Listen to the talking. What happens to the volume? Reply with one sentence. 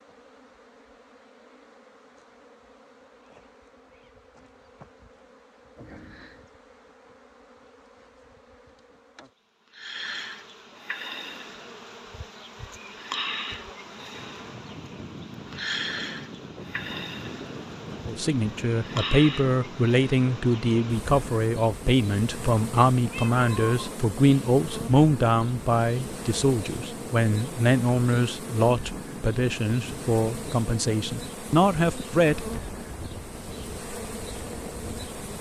The volume of the talking stays about the same.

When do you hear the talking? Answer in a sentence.
The talking can be heard from 18.1 to 32.6 s.